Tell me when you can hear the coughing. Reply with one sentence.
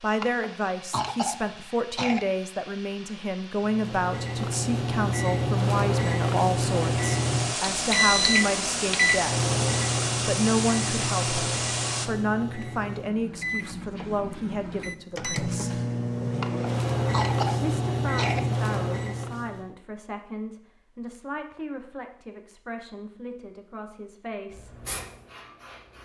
You can hear the coughing from 0.2 to 2.2 s and from 16.4 to 18.4 s.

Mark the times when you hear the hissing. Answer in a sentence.
You can hear the hissing from 0.0 to 12.1 s and from 24.5 to 26.0 s.